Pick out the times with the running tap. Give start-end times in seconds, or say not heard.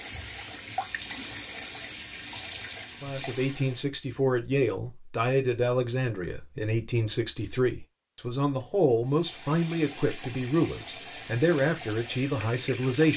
0.0-3.9, 9.1-13.1.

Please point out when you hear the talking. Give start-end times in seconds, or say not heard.
3.0-13.1.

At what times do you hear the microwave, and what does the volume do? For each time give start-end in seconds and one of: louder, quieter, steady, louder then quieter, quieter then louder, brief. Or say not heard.
not heard.